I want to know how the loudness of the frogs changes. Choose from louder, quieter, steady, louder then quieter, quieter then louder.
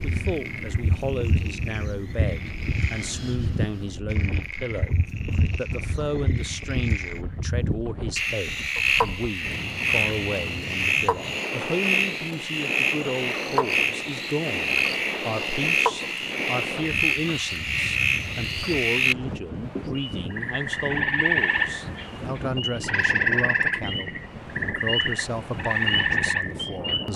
louder.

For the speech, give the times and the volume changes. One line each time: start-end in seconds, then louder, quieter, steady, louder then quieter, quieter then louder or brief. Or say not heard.
0.0-27.1 steady.